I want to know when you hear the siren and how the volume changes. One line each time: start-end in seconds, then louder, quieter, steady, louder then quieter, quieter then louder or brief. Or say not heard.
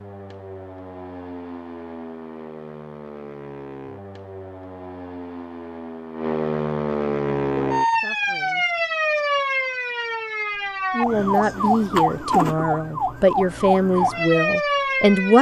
0.0-15.3 louder.